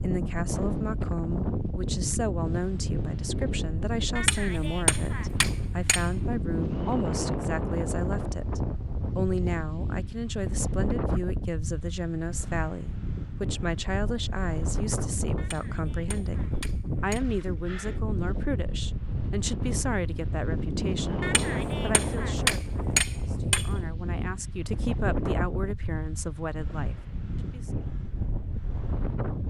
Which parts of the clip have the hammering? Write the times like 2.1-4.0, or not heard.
4.2-6.1, 15.3-17.2, 21.2-23.7.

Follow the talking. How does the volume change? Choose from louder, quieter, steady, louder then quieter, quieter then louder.
steady.